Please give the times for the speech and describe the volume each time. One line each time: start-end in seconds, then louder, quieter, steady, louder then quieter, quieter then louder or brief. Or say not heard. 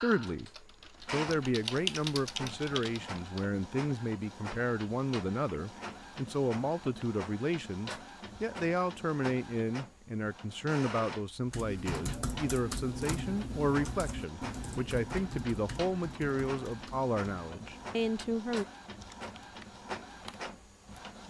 0.0-18.6 steady.